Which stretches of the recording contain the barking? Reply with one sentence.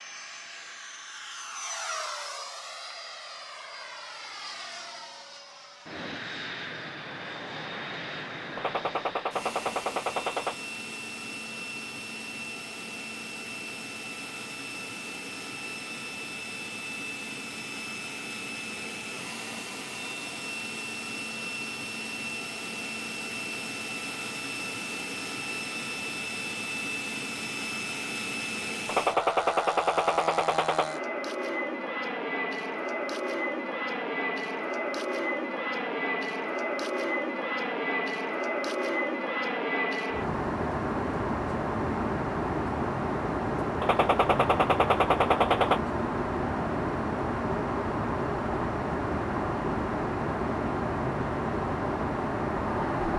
You can't hear the barking here.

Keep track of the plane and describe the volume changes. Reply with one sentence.
The volume of the plane goes up.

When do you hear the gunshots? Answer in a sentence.
The gunshots can be heard from 8.6 to 10.6 s, from 28.9 to 30.9 s and from 43.8 to 45.8 s.